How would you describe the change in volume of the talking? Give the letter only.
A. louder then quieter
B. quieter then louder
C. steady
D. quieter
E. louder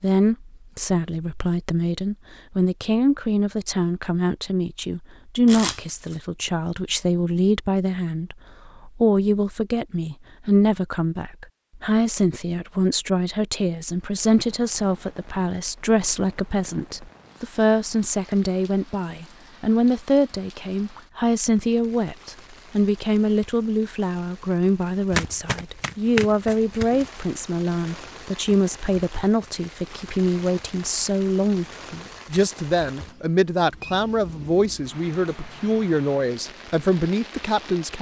C.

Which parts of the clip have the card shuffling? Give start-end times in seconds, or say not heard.
5.5-6.2, 25.1-27.1.